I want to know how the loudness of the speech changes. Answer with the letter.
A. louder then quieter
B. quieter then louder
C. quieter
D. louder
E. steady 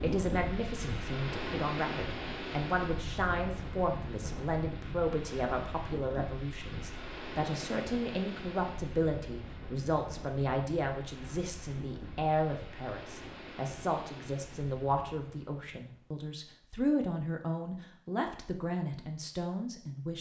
E.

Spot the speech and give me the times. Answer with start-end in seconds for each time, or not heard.
0.0-20.1.